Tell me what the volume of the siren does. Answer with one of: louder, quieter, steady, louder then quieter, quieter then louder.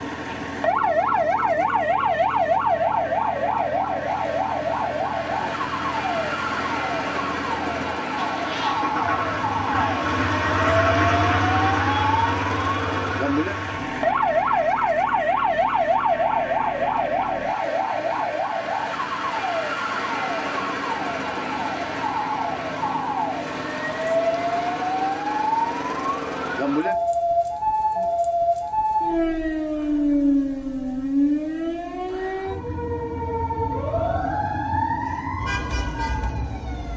steady.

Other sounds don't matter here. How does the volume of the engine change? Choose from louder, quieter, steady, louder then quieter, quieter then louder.
louder then quieter.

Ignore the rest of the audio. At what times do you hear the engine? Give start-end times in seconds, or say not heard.
0.0-18.5.